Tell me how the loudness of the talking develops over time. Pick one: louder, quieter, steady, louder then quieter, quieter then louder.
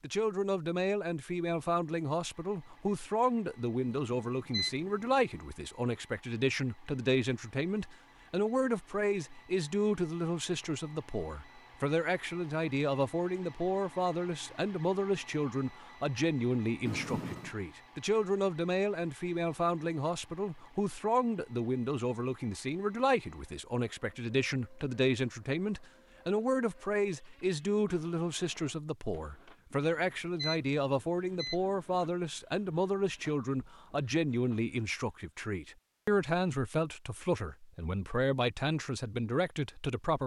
steady.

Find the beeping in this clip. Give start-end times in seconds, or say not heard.
3.9-5.4, 16.9-17.5, 29.7-32.1.